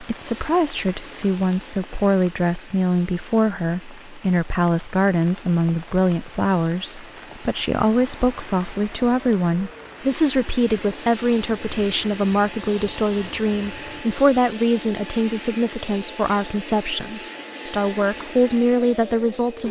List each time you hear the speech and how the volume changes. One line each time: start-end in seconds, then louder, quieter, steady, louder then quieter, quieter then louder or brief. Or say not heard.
0.0-19.6 steady.